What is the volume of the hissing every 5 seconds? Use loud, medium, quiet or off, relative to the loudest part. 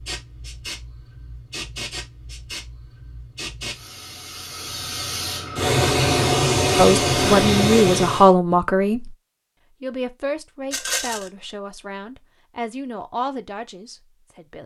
quiet, loud, off.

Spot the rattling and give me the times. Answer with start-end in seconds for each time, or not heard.
10.7-11.3.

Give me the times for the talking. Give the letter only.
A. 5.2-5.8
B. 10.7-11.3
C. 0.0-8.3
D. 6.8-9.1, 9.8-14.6
D.